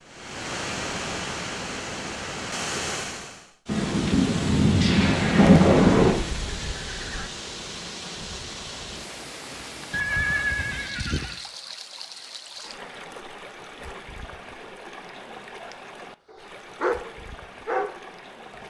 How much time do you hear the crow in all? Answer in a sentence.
You can't hear the crow here.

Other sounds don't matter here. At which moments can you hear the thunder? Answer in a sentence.
The thunder can be heard from 3.6 to 6.2 s.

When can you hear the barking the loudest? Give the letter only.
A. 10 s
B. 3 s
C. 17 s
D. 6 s
C.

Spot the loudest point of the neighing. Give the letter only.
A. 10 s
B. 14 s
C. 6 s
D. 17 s
A.